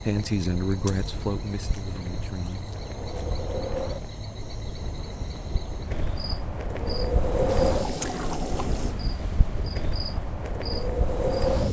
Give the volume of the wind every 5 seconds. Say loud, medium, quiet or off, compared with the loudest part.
medium, loud, loud.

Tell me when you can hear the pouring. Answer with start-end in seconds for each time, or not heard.
7.5-8.9.